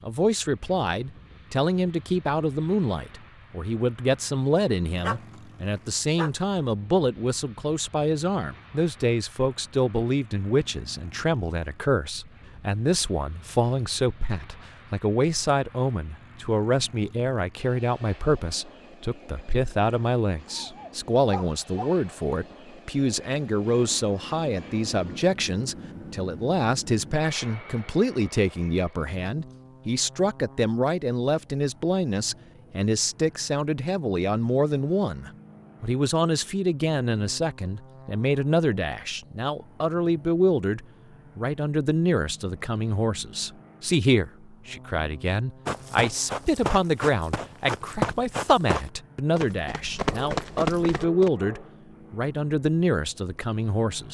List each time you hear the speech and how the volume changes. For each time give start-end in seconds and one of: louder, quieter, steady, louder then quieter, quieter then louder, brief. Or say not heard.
0.0-54.0 steady.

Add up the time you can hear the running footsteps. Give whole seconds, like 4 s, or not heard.
6 s.